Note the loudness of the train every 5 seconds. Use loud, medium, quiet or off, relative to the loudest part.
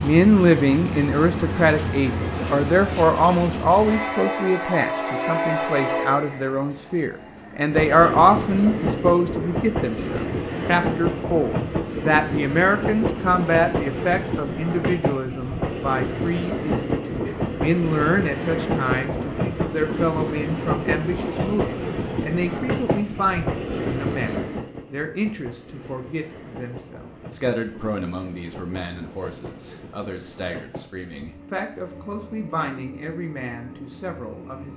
loud, loud, loud, loud, loud, quiet, quiet.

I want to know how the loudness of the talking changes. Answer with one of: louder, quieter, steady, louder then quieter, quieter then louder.
quieter.